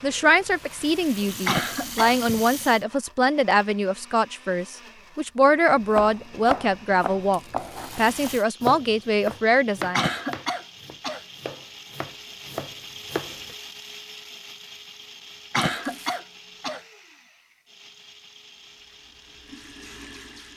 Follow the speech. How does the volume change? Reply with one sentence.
The loudness of the speech stays about the same.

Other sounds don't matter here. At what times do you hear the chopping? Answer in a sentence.
The chopping can be heard from 5.7 to 13.5 s.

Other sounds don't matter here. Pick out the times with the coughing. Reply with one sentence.
The coughing can be heard from 1.4 to 2.1 s, from 9.9 to 11.2 s and from 15.5 to 16.8 s.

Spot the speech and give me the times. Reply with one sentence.
You can hear the speech from 0.0 to 10.1 s.